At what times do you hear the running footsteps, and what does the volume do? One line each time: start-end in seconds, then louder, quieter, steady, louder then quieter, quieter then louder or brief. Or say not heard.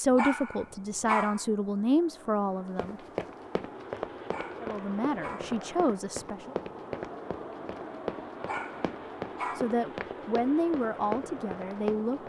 2.8-12.2 steady.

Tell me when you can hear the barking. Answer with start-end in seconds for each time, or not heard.
0.1-1.4, 4.2-5.6, 8.4-9.8.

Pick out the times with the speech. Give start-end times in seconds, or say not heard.
0.0-3.0, 4.6-6.5, 9.6-12.2.